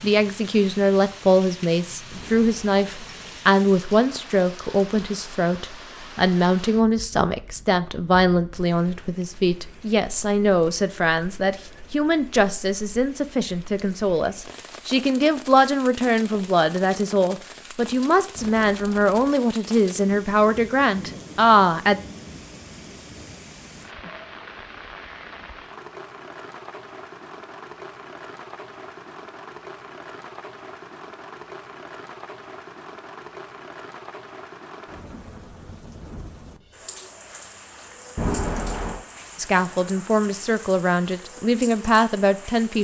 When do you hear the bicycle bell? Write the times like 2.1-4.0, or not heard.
2.1-3.4, 18.4-19.4, 38.1-39.0.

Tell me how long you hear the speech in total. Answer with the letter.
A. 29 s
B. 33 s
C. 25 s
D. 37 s
C.